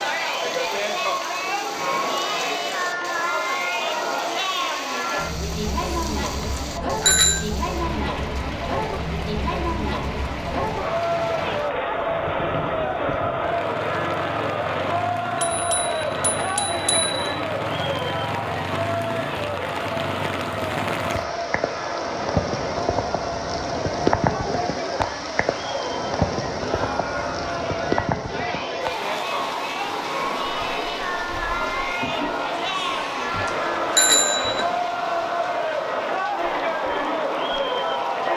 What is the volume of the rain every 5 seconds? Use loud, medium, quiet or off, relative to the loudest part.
medium, medium, medium, medium, loud, loud, medium, medium.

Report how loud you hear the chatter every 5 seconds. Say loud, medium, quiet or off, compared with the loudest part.
loud, loud, loud, loud, medium, medium, loud, loud.